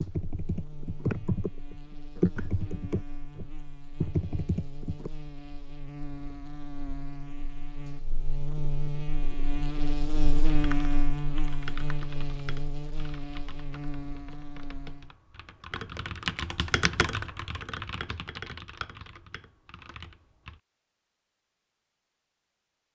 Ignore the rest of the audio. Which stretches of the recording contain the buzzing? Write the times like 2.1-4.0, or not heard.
0.0-15.2.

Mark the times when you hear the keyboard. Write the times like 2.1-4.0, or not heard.
0.0-5.1, 10.5-20.6.